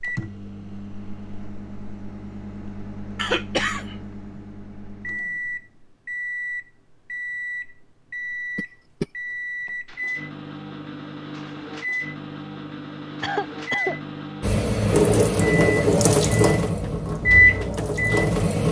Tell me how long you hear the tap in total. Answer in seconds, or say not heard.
4 s.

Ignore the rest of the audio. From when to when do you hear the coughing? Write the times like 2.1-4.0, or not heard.
3.1-4.4, 8.6-9.1, 13.2-14.0.